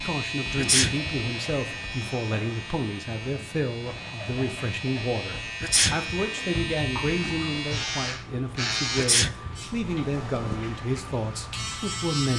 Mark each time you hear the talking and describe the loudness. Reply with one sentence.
You can hear the talking from 0.0 to 12.3 s, at a steady volume.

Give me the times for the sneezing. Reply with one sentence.
You can hear the sneezing from 0.6 to 1.1 s, from 5.6 to 6.2 s and from 8.9 to 9.7 s.